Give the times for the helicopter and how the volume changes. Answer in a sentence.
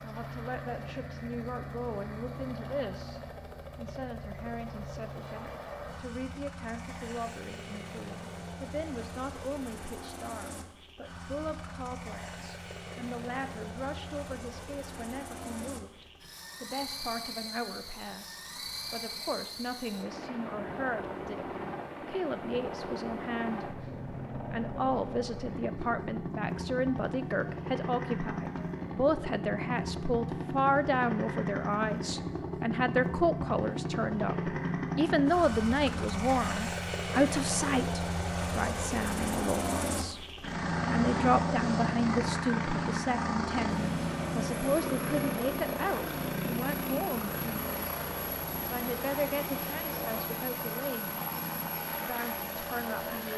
The helicopter can be heard from 0.0 to 53.3 s, getting louder.